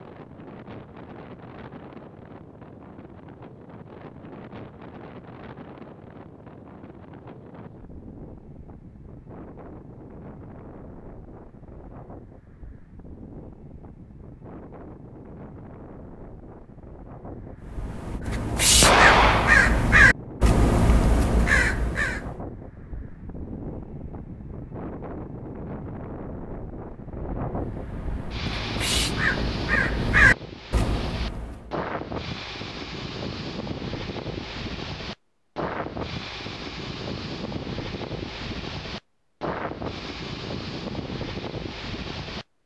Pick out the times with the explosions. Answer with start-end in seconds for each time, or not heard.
18.8-19.9.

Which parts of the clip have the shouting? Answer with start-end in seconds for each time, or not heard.
not heard.